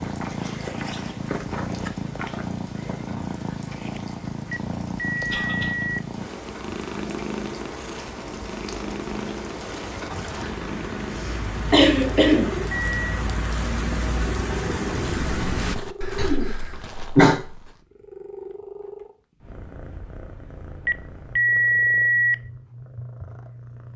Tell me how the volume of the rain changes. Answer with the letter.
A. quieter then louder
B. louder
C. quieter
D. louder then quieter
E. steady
B.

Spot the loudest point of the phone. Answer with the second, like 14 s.
22 s.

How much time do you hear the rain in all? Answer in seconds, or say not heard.
16 s.